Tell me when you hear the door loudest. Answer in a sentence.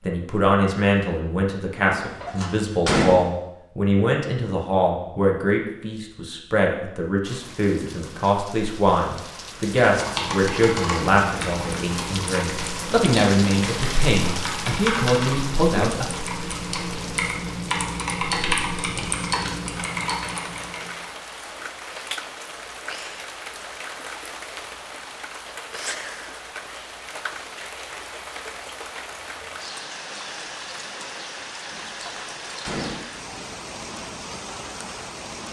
The volume of the door peaks at 3 seconds.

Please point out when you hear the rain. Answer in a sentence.
The rain can be heard from 7.2 to 35.4 s.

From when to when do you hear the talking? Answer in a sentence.
You can hear the talking from 0.1 to 16.1 s.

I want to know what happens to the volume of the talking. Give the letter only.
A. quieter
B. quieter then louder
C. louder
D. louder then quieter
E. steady
E.